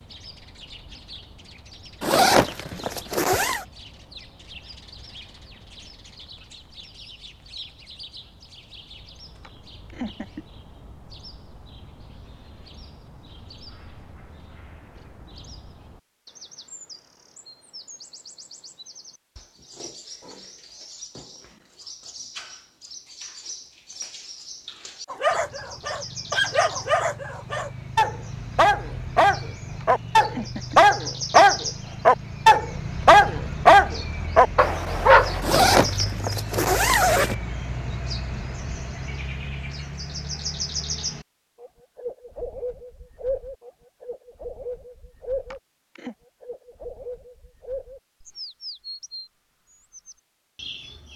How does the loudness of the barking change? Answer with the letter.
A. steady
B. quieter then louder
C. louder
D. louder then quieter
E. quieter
C.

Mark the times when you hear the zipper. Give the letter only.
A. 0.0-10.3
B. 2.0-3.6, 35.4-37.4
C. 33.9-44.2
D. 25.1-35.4
B.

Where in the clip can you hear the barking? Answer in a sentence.
You can hear the barking from 25.1 to 35.4 s.